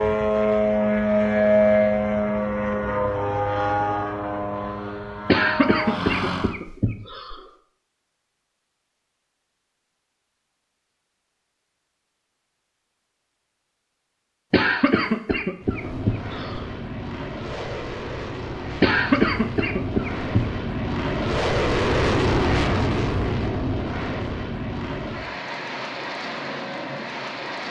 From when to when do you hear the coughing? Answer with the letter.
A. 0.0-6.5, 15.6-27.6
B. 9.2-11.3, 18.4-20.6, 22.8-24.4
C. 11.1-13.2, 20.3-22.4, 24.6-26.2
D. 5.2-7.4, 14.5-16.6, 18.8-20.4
D.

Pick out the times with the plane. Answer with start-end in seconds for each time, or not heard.
0.0-6.5, 15.6-27.6.